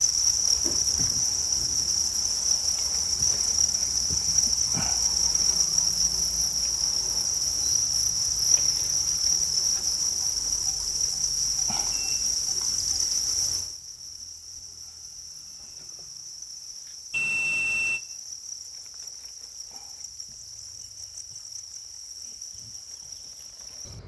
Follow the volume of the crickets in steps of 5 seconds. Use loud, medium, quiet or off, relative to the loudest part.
loud, loud, loud, quiet, quiet.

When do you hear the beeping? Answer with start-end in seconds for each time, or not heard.
0.6-1.2, 11.6-12.7, 17.1-18.0.